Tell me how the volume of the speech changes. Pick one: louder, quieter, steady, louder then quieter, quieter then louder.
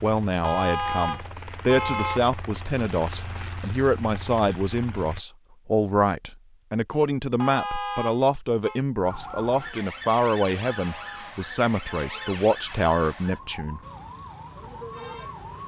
steady.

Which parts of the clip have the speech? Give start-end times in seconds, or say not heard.
0.0-13.8.